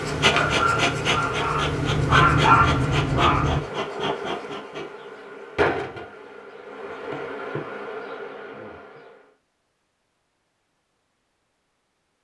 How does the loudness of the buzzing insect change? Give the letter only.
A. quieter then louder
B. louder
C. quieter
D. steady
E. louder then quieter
C.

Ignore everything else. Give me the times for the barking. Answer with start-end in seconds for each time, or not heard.
0.0-3.6.